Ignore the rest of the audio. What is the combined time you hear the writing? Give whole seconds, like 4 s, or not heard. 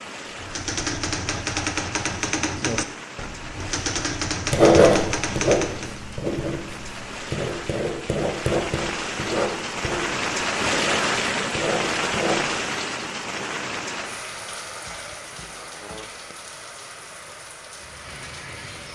8 s.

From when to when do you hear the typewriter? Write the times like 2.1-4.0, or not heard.
0.3-6.0.